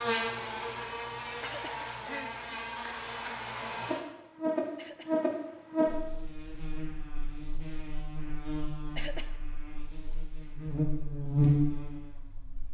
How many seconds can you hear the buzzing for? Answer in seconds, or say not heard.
13 s.